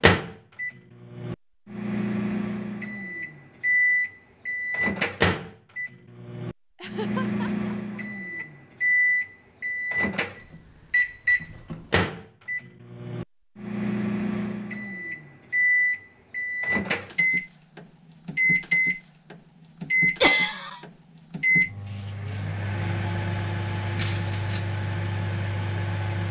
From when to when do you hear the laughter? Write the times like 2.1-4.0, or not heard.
6.8-8.4, 20.2-20.8.